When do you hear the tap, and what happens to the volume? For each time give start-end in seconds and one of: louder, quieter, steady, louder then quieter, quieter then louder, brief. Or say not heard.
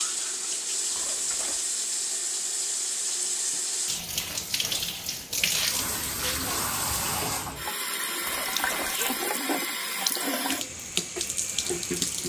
0.0-12.2 steady.